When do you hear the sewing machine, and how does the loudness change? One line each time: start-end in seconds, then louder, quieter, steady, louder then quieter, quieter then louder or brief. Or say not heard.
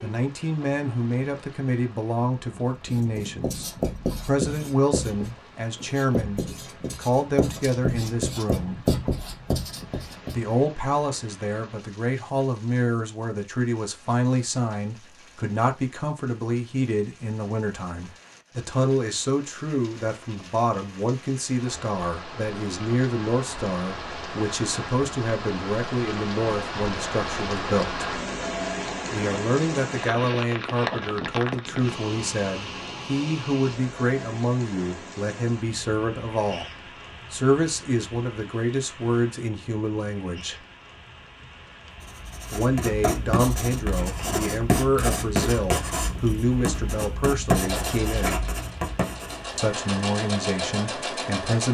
47.5-51.6 quieter then louder.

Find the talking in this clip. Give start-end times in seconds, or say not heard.
0.0-8.8, 10.3-28.1, 29.1-36.6, 37.3-40.5, 42.5-48.5, 49.5-51.6.